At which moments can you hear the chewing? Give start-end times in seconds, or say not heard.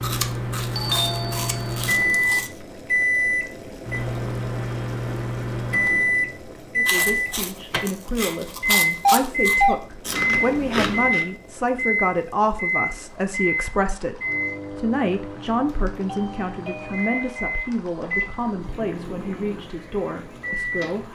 0.0-2.5, 6.8-11.2.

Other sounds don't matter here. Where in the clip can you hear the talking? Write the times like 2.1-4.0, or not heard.
6.8-21.0.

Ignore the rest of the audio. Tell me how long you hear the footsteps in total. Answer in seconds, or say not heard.
not heard.